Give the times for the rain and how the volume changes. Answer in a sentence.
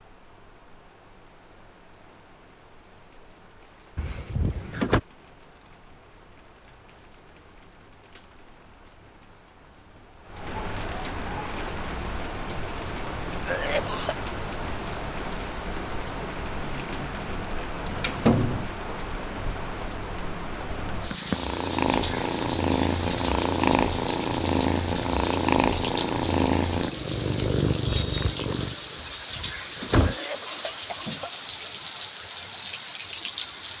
You can hear the rain from 0.0 to 33.7 s, getting louder.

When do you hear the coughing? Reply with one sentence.
You can hear the coughing from 13.4 to 14.2 s and from 30.0 to 31.3 s.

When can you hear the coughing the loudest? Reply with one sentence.
The volume of the coughing peaks at 14 seconds.